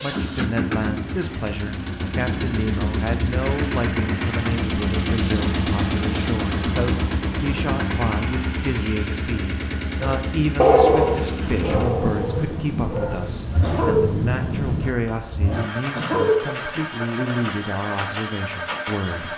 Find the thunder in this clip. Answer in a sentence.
The thunder can be heard from 11.4 to 14.9 s.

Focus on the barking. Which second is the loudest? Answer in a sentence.
The volume of the barking peaks at 11 seconds.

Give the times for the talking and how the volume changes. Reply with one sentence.
You can hear the talking from 0.0 to 19.3 s, at a steady volume.